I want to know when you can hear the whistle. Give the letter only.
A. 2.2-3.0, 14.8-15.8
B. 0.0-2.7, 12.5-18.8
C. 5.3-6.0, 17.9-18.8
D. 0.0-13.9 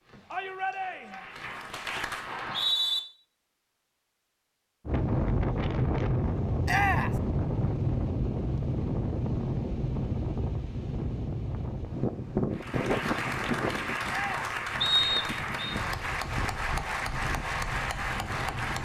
A.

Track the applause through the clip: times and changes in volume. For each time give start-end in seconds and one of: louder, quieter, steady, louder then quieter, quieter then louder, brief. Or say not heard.
0.0-2.7 brief
12.5-18.8 steady.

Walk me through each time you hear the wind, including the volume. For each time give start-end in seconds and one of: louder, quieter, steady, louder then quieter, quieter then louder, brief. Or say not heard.
4.8-18.8 quieter.